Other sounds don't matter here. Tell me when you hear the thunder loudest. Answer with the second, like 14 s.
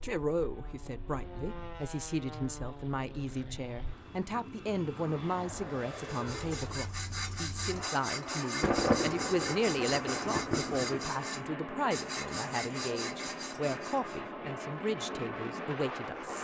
9 s.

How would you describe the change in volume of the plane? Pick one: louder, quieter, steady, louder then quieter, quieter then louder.
louder.